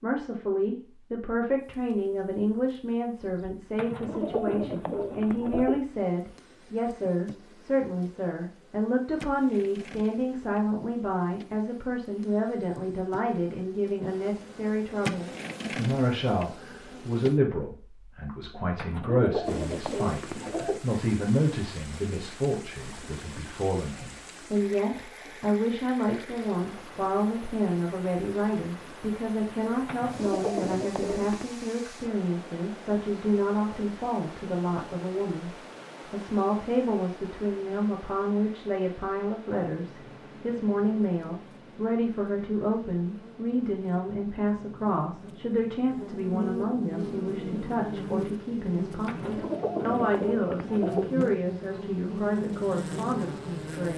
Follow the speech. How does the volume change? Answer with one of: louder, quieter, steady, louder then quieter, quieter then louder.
steady.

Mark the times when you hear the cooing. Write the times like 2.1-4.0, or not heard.
3.8-5.8, 18.8-20.8, 29.9-31.6, 49.0-51.1.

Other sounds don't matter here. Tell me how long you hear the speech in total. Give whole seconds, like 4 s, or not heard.
54 s.